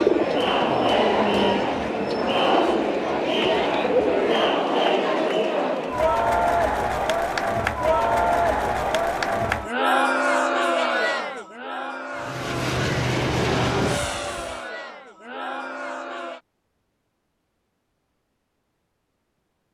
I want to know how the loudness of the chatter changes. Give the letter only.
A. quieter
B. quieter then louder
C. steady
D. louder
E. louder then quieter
A.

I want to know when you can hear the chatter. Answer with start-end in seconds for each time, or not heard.
0.0-16.4.